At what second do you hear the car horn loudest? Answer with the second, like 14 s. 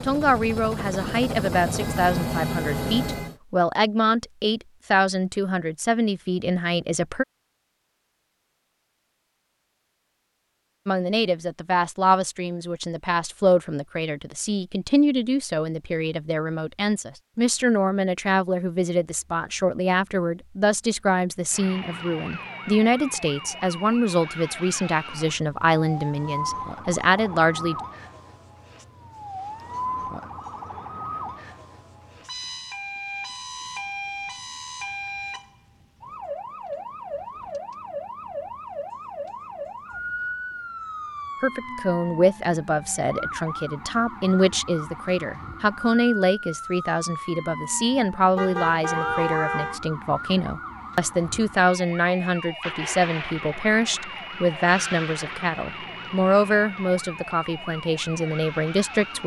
49 s.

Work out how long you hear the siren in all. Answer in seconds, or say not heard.
38 s.